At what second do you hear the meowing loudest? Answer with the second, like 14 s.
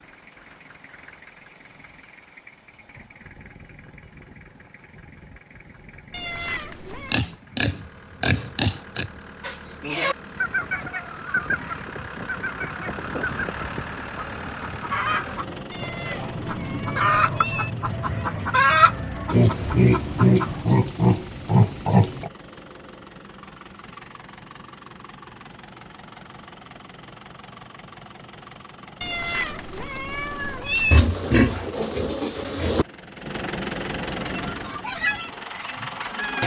31 s.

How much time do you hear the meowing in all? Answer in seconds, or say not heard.
5 s.